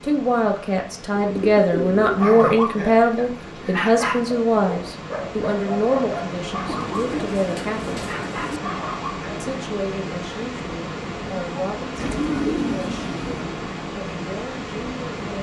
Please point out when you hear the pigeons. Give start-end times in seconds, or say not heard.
1.1-2.2, 6.7-8.6, 11.9-13.5.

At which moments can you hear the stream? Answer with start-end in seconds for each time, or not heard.
0.0-15.3.